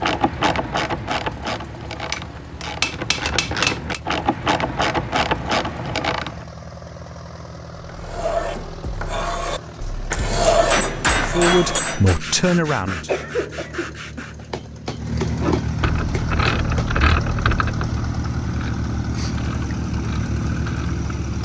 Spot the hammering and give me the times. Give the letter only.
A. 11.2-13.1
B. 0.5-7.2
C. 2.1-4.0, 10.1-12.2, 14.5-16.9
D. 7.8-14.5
C.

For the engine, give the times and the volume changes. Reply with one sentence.
The engine can be heard from 0.1 to 21.3 s, getting louder.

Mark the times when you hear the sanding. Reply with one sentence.
The sanding can be heard from 7.8 to 14.5 s.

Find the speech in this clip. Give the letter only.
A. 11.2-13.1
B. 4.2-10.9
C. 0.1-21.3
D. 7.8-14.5
A.